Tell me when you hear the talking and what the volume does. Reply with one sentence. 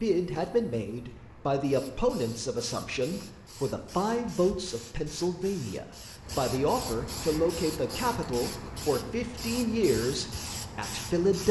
The talking can be heard from 0.0 to 11.4 s, at a steady volume.